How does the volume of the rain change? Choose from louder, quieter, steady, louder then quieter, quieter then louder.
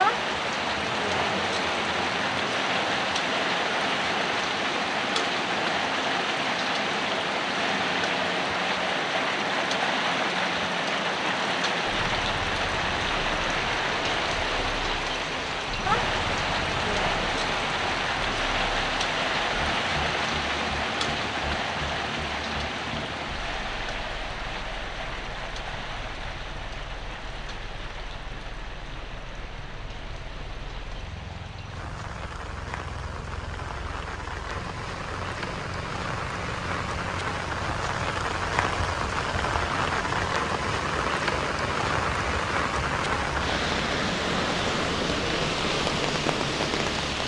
quieter then louder.